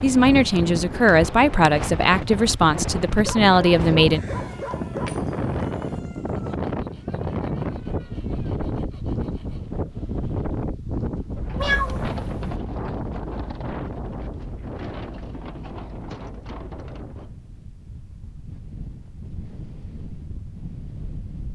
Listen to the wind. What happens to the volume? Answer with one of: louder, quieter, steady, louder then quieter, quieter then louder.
quieter.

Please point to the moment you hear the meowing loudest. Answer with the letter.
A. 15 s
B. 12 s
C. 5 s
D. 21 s
B.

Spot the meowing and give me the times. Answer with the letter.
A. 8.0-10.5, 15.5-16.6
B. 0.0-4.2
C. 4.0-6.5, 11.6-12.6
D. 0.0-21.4
C.